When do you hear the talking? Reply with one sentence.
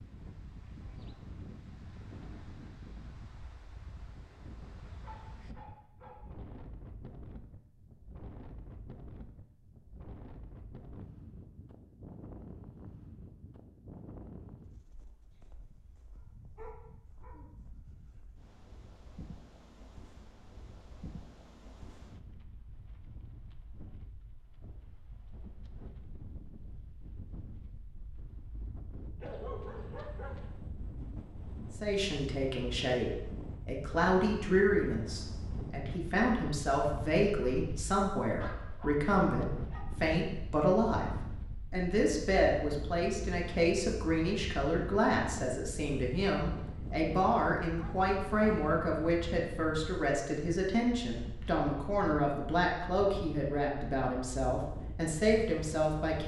The talking can be heard from 31.8 to 41.1 s and from 41.7 to 56.2 s.